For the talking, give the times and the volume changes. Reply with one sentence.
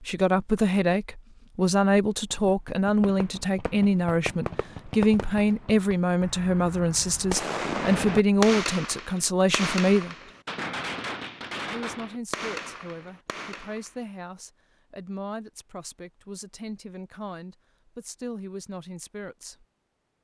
You can hear the talking from 0.0 to 10.3 s, at a steady volume; and from 11.7 to 19.6 s, at a steady volume.